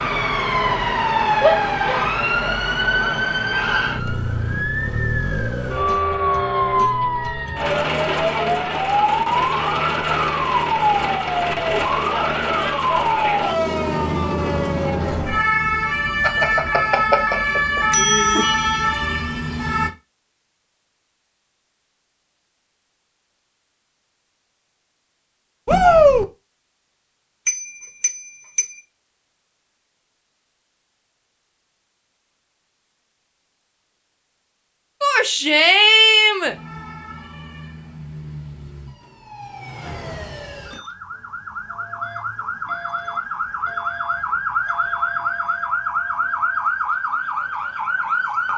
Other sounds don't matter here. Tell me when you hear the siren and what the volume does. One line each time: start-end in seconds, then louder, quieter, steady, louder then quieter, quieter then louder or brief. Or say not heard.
0.0-19.9 steady
36.5-48.5 louder.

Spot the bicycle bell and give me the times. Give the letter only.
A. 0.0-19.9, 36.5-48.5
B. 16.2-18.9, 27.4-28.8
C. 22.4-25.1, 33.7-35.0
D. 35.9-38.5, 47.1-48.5
B.